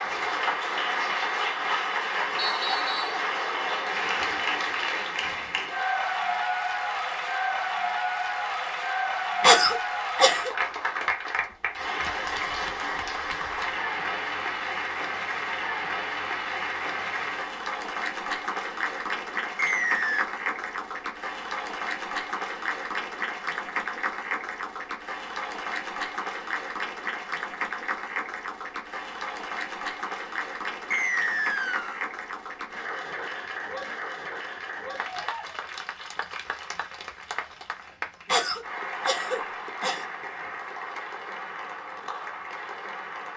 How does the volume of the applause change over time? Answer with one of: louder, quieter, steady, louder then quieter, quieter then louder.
quieter.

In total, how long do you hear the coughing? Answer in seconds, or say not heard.
3 s.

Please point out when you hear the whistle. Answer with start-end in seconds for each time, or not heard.
2.4-3.2, 19.6-20.2, 30.9-32.0.